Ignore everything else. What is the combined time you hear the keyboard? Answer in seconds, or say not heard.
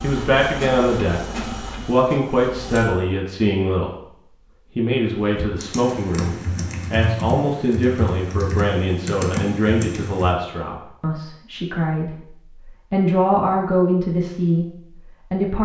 5 s.